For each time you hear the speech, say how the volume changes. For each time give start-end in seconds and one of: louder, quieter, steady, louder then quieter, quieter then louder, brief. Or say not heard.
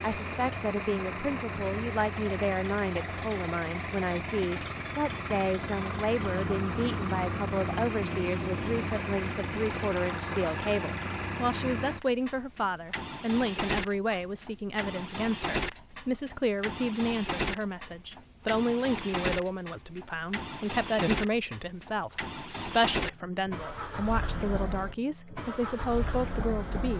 0.0-26.9 steady.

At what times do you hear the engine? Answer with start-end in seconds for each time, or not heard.
0.0-26.9.